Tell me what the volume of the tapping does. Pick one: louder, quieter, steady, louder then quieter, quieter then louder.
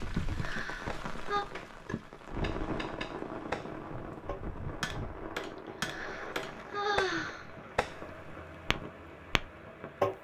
louder then quieter.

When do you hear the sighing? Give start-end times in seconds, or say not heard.
0.3-1.4, 5.8-8.2.